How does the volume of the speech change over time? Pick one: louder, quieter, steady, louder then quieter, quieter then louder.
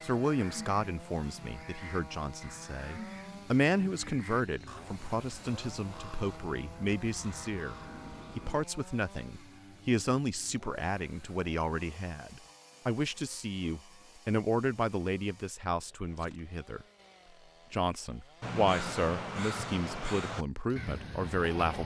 steady.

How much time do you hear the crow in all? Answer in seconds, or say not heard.
12 s.